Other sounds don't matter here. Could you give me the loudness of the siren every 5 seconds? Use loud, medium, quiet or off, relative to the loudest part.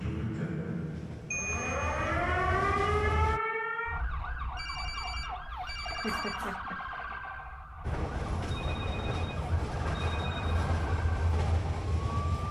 loud, medium, medium.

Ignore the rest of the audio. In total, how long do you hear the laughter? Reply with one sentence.
You can hear the laughter for 2 seconds altogether.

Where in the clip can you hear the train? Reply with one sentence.
The train can be heard from 0.0 to 3.4 s and from 7.8 to 12.4 s.